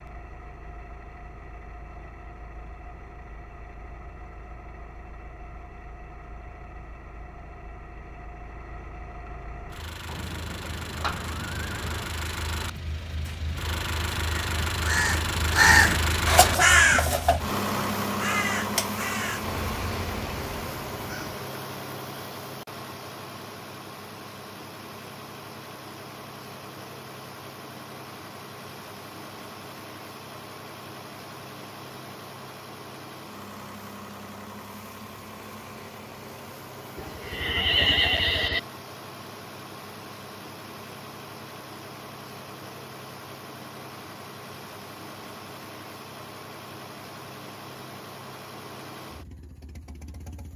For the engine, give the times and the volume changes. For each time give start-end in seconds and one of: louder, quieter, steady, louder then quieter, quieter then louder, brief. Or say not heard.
0.0-50.5 louder then quieter.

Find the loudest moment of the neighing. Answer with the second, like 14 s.
38 s.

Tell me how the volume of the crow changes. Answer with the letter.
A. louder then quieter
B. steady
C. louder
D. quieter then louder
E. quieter
E.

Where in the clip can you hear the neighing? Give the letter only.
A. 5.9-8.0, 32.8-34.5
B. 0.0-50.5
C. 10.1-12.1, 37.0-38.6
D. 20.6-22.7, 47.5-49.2
C.